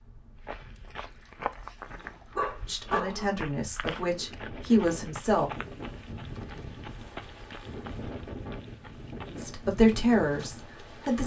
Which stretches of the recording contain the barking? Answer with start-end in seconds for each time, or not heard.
1.9-3.4.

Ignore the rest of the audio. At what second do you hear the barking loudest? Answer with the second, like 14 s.
3 s.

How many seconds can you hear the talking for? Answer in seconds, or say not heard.
5 s.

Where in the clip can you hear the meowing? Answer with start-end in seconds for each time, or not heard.
not heard.